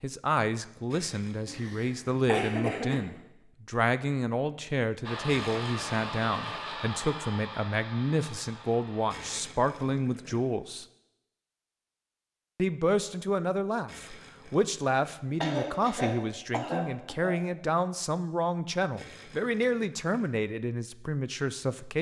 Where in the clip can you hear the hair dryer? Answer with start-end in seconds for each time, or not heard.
5.0-9.2.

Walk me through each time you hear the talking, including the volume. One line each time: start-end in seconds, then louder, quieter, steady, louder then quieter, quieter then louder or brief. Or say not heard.
0.0-10.8 steady
12.6-21.9 steady.